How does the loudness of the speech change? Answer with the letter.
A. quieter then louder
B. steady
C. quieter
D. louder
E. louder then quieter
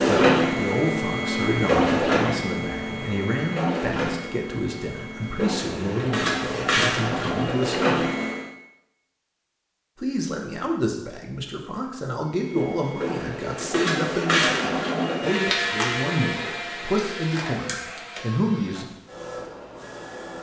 B.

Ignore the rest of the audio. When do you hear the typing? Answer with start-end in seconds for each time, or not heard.
not heard.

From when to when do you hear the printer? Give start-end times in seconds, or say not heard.
0.0-8.5, 12.2-20.3.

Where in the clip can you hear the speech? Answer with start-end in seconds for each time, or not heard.
0.1-8.1, 10.0-18.9.